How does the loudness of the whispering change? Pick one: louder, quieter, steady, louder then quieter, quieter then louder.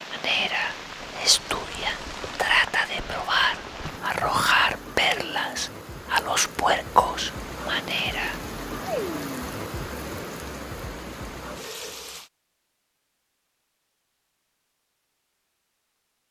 steady.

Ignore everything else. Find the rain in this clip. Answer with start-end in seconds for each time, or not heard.
0.0-12.3.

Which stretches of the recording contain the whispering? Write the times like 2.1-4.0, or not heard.
0.1-8.4.